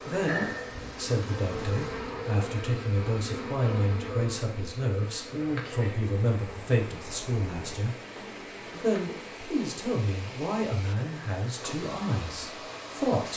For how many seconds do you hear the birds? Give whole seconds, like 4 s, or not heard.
not heard.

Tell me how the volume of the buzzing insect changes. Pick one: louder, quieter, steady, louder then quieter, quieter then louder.
quieter.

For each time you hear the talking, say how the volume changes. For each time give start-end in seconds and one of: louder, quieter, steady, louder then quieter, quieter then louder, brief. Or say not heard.
0.0-8.0 steady
8.7-13.3 quieter.